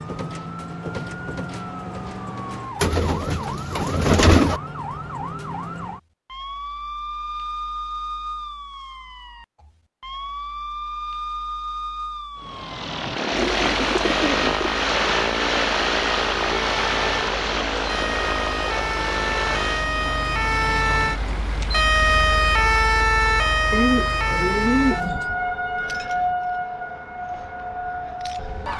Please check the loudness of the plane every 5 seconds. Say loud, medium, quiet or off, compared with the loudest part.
off, off, loud, loud, medium, off.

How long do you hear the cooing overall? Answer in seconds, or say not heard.
5 s.